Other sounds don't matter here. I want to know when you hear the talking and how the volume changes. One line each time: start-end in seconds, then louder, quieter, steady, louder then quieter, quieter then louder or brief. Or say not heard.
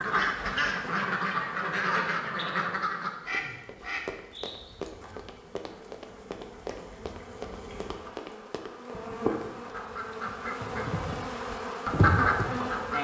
not heard.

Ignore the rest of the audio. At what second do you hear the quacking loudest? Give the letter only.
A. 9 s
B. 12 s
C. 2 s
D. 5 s
B.